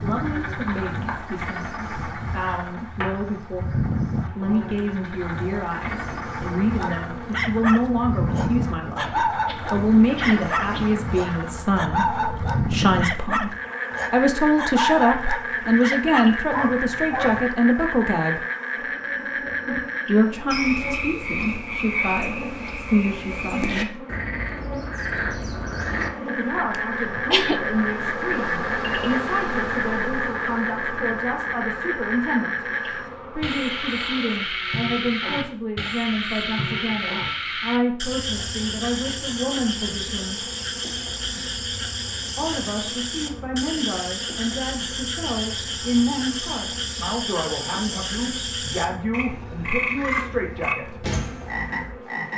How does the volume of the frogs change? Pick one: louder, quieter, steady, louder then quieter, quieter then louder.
steady.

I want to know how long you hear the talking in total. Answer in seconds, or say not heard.
44 s.